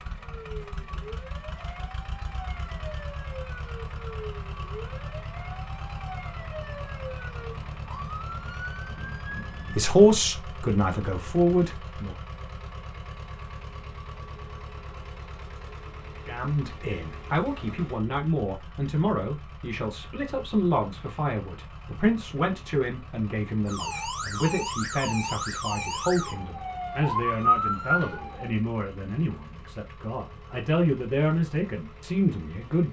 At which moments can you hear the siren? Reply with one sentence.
The siren can be heard from 0.1 to 9.8 s and from 23.6 to 28.5 s.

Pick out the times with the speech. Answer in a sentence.
You can hear the speech from 9.7 to 12.2 s and from 16.2 to 32.8 s.